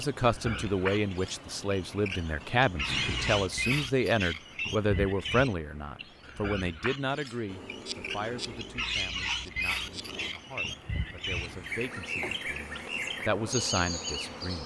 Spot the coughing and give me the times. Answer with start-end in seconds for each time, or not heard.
2.9-3.5, 11.2-12.4.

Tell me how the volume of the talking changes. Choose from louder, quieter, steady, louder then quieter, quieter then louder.
quieter then louder.